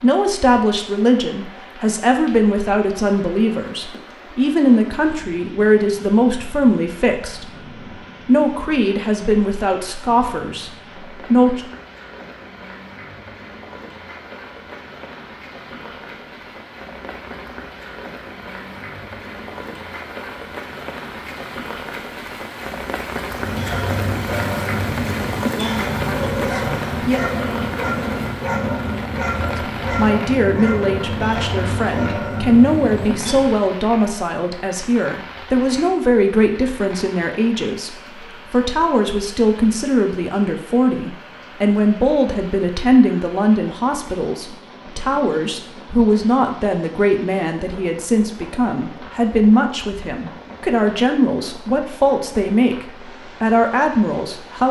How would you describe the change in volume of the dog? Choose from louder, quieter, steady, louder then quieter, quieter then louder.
steady.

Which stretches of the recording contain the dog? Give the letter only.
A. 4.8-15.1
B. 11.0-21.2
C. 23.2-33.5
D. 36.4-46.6
C.